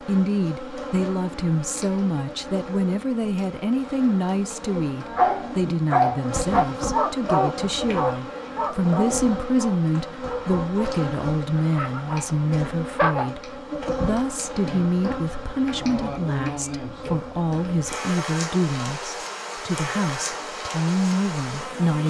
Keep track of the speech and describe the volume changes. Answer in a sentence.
The loudness of the speech stays about the same.